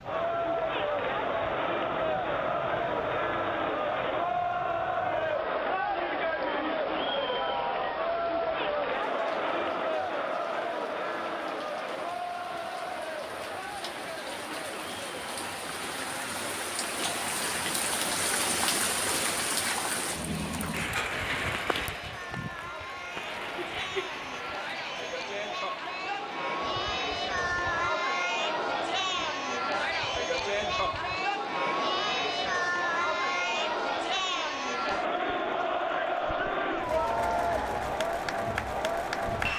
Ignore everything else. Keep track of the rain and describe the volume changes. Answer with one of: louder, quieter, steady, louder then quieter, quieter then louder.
louder then quieter.